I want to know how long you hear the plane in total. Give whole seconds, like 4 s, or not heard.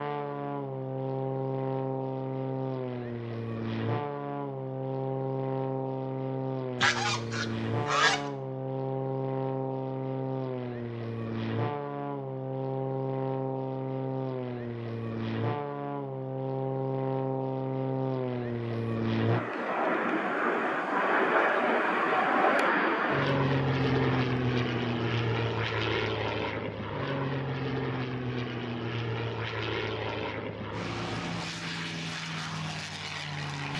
34 s.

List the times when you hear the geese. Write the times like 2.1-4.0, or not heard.
6.8-8.2.